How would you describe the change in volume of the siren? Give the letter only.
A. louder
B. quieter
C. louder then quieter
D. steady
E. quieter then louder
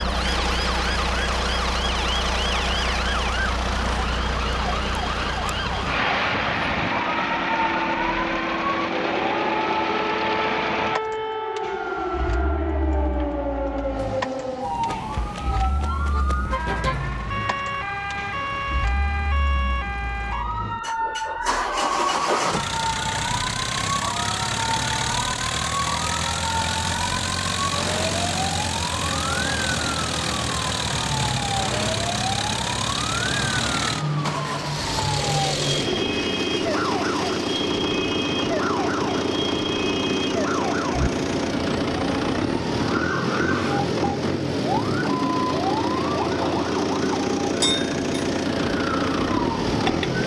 D.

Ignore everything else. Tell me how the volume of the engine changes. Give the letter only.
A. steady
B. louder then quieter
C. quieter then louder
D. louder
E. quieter
C.